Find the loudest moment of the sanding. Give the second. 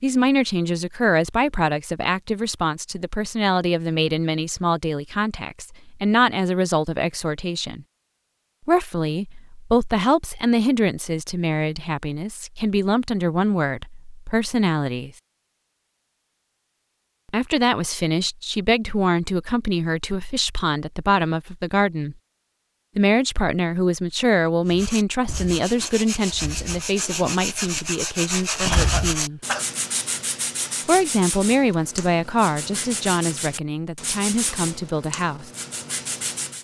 29 s.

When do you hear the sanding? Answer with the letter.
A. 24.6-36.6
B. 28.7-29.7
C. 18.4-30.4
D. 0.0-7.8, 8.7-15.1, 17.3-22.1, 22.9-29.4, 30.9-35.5
A.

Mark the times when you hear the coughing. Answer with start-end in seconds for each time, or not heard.
28.7-29.7.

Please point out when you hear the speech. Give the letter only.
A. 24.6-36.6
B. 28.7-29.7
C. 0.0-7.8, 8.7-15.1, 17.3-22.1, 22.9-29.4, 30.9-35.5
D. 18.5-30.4
C.